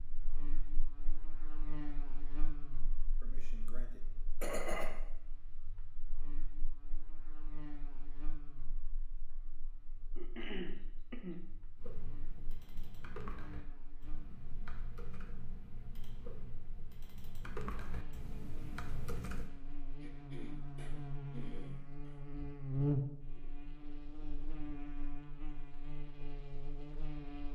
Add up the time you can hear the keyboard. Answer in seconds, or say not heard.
8 s.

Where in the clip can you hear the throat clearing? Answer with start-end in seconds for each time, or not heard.
3.2-4.9, 10.2-11.4, 20.0-22.2.